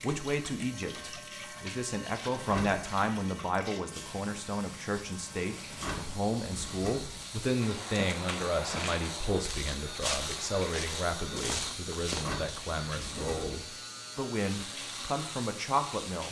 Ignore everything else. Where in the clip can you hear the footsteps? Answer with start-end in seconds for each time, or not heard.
7.6-12.2.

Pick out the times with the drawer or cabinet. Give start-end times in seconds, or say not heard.
2.4-2.9, 5.7-7.2, 12.1-13.6.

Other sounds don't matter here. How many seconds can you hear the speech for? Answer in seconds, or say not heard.
16 s.